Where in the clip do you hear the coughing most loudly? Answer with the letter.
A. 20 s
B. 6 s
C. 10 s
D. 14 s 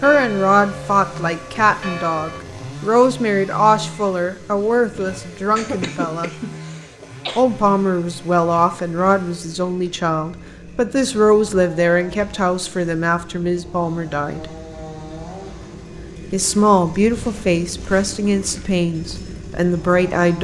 B.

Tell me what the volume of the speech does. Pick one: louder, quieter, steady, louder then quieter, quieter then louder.
steady.